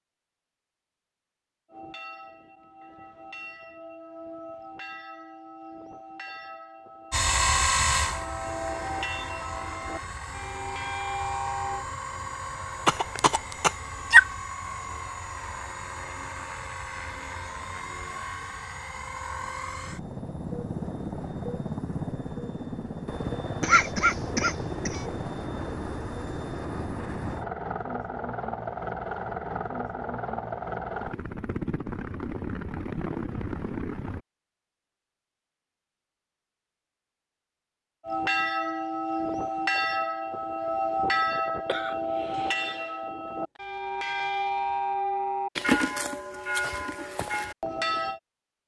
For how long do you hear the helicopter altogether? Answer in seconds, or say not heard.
27 s.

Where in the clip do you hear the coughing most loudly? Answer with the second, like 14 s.
14 s.